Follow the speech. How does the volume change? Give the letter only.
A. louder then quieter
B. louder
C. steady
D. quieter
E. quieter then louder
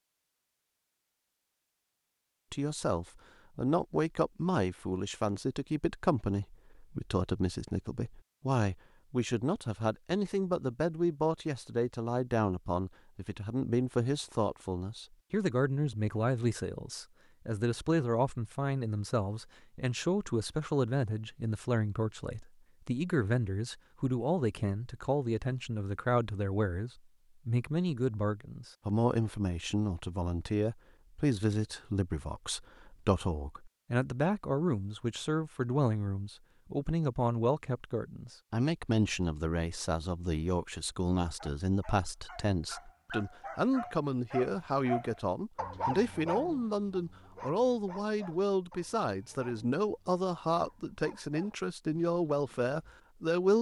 C.